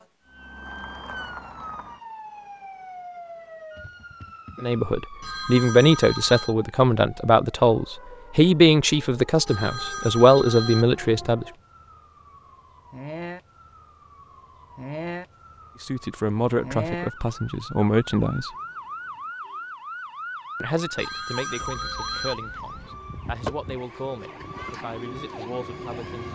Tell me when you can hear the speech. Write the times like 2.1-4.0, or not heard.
4.6-11.4, 15.8-18.5, 20.6-26.2.